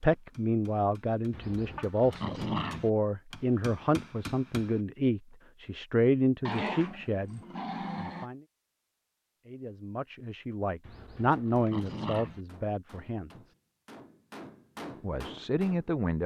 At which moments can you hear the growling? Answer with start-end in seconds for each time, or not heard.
1.3-2.9, 6.5-8.2, 10.8-12.4.